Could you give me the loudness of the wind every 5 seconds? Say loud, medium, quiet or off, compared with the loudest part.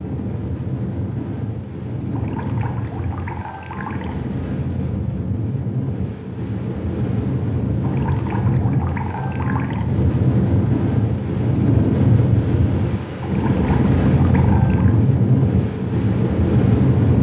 medium, medium, loud, loud.